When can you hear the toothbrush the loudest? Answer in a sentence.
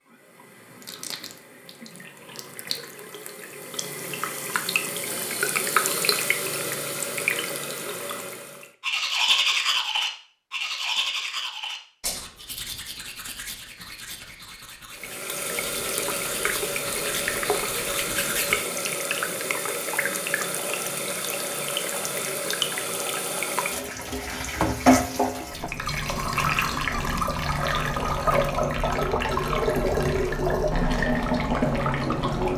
The volume of the toothbrush peaks at 9 seconds.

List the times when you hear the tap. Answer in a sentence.
You can hear the tap from 0.1 to 8.7 s and from 14.9 to 32.5 s.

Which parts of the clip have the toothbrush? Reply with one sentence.
The toothbrush can be heard from 8.8 to 18.6 s.